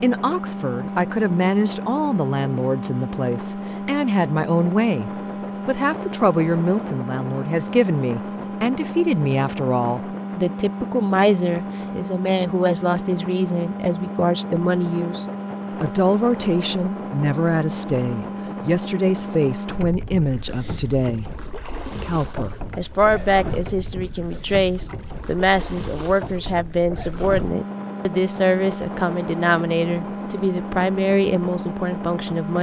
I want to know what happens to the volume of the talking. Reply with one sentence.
The volume of the talking stays about the same.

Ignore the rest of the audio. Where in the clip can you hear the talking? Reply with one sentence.
The talking can be heard from 0.0 to 32.5 s.